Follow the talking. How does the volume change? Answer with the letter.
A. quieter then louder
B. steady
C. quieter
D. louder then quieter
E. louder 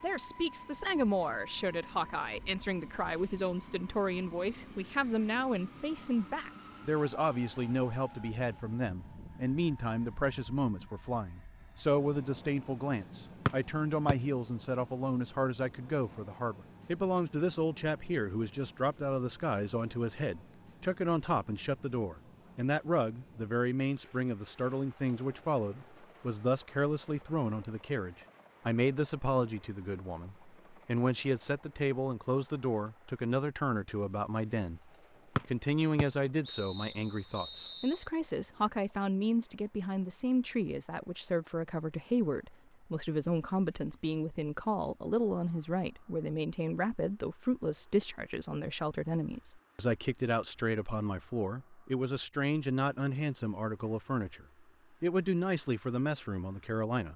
B.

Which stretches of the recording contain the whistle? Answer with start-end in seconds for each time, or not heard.
13.4-14.2, 35.4-38.0.